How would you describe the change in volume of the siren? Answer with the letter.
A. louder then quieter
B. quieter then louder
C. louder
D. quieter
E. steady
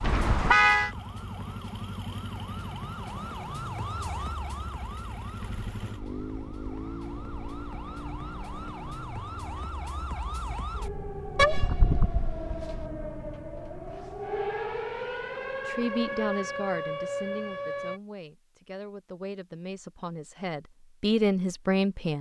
C.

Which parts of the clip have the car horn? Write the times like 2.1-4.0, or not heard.
0.0-0.9, 11.3-12.8.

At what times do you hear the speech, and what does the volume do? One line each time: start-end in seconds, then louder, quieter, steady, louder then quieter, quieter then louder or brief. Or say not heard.
15.7-22.1 quieter then louder.